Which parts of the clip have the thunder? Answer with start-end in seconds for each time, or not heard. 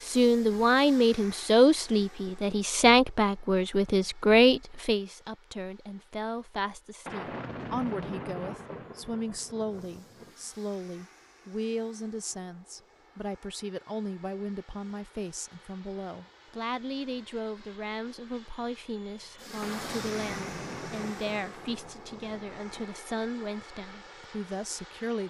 7.0-10.3, 19.6-22.9.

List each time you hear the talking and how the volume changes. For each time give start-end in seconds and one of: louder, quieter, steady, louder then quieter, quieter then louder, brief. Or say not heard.
0.1-25.2 quieter.